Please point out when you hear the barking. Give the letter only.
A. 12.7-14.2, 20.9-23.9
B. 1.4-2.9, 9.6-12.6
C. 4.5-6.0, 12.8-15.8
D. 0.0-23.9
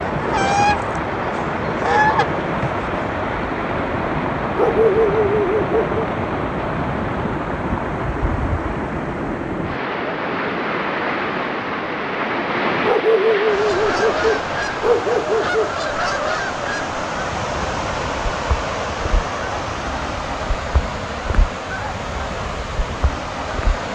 C.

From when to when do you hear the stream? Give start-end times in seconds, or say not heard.
0.0-23.9.